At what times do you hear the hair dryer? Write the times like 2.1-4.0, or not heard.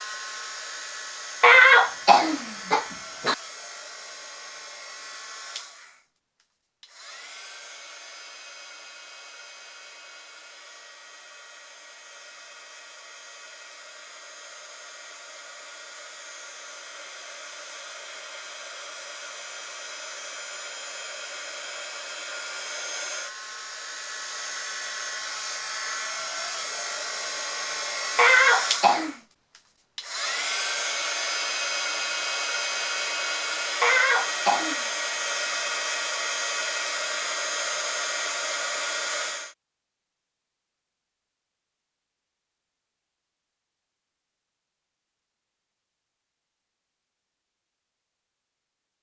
0.0-39.5.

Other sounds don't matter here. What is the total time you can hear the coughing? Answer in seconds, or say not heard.
4 s.